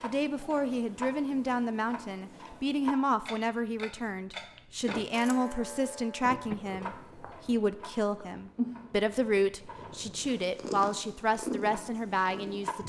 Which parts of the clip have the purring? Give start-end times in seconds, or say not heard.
6.4-12.8.